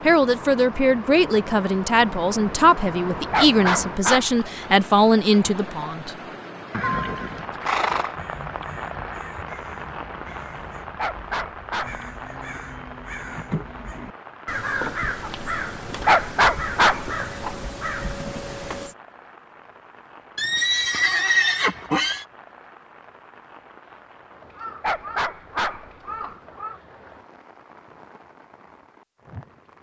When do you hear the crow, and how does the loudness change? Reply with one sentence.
You can hear the crow from 8.1 to 18.9 s, getting louder; and briefly from 24.5 to 26.8 s.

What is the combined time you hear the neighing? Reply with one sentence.
You can hear the neighing for 3 seconds altogether.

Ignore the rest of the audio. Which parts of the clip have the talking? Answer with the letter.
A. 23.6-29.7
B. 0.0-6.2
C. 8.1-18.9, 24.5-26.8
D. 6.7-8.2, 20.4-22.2
B.